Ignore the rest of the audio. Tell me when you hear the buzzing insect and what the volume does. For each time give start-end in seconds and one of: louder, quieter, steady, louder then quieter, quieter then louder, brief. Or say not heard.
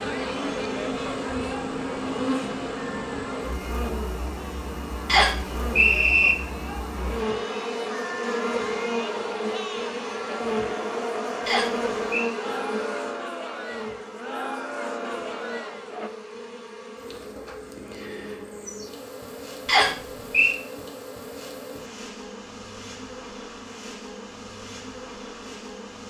0.0-26.0 quieter.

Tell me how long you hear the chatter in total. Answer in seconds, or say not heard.
16 s.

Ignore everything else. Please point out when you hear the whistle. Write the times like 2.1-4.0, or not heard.
5.0-6.3, 11.4-12.3, 19.6-20.6.